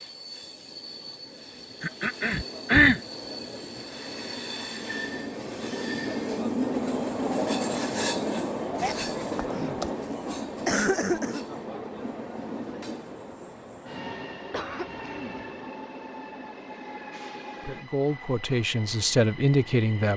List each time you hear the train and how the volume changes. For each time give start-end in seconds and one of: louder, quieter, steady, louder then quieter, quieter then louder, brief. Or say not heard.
0.0-20.1 louder then quieter.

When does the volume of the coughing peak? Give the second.
3 s.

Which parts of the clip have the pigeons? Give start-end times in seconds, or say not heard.
not heard.